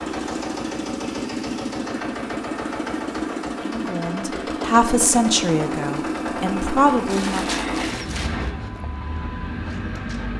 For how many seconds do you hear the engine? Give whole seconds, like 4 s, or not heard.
10 s.